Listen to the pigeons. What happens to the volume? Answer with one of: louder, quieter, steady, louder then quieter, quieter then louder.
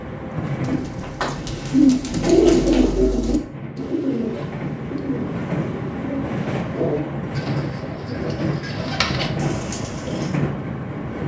quieter.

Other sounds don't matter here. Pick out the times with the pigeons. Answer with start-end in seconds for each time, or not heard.
0.5-10.4.